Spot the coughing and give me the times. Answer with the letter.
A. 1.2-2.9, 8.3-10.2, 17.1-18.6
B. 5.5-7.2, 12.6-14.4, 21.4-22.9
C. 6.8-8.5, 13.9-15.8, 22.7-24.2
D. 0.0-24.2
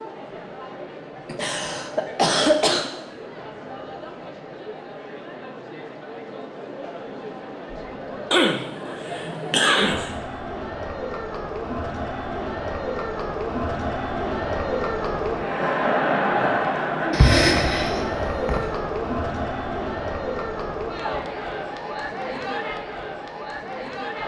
A.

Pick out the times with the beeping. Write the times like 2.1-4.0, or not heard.
not heard.